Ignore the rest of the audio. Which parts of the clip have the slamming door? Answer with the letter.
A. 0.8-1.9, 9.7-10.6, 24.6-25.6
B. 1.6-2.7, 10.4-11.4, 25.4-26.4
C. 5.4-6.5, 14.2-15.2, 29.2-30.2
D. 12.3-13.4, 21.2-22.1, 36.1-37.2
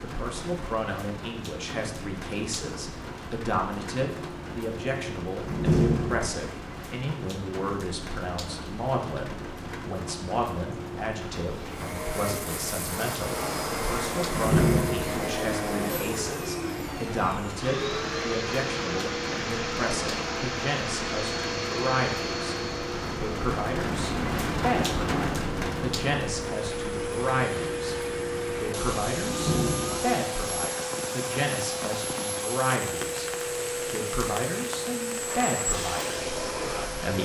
C.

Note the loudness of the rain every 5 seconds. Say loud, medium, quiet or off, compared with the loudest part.
medium, medium, medium, medium, loud, loud, medium, medium.